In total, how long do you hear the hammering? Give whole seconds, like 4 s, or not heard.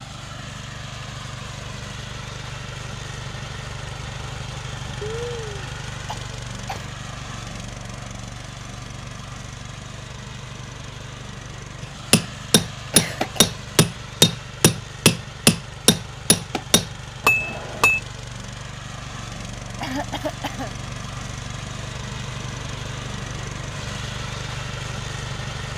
6 s.